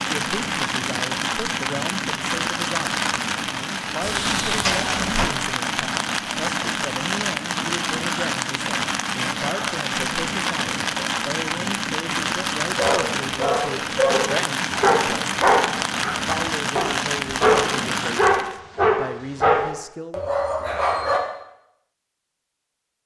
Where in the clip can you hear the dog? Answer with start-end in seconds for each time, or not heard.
12.8-21.2.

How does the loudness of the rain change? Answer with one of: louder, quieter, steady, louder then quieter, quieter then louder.
steady.